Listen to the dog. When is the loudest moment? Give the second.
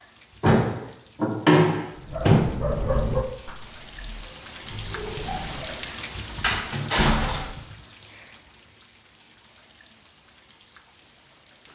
3 s.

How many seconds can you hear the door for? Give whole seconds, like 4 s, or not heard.
3 s.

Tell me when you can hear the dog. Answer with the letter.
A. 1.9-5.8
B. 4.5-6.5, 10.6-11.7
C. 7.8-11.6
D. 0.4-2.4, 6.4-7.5
A.